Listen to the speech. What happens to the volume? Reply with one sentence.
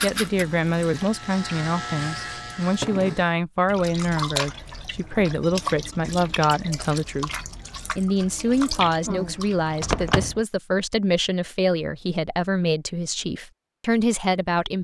The loudness of the speech stays about the same.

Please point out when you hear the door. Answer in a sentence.
You can hear the door from 9.8 to 10.4 s.